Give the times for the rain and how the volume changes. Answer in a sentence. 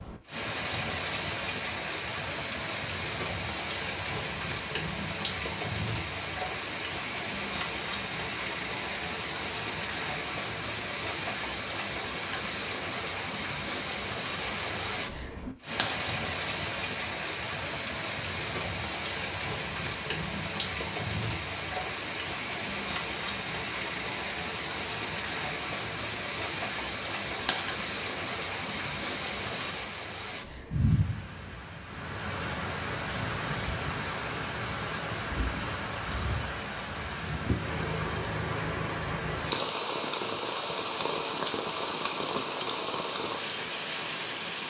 The rain can be heard from 0.0 to 44.6 s, at a steady volume.